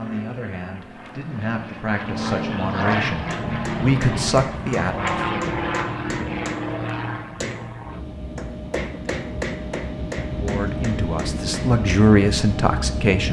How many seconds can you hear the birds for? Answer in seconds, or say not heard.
not heard.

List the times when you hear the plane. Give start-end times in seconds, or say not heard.
0.0-13.2.